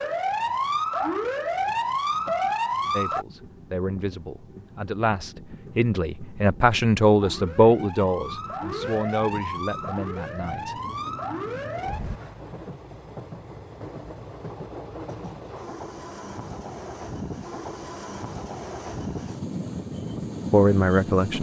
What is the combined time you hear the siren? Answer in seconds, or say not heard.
8 s.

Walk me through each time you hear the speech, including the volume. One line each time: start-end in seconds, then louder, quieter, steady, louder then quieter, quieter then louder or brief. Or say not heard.
2.9-10.8 louder then quieter
20.5-21.3 brief.